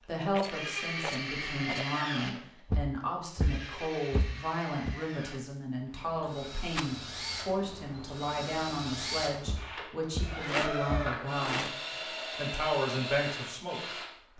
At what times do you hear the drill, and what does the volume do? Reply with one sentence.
You can hear the drill from 0.3 to 14.2 s, getting quieter then louder.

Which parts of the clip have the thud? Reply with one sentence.
The thud can be heard from 2.7 to 5.0 s and from 9.4 to 11.2 s.